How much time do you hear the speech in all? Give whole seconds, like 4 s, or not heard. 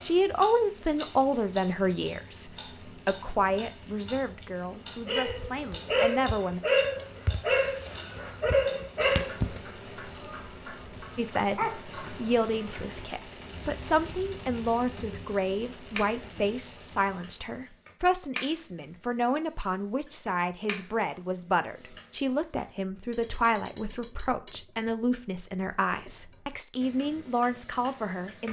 24 s.